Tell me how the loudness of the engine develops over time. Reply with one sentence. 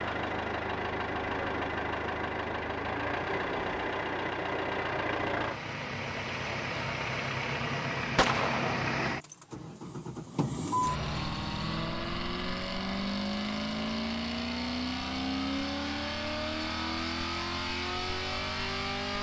The loudness of the engine stays about the same.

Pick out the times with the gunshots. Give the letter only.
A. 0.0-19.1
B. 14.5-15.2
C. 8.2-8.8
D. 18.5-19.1
C.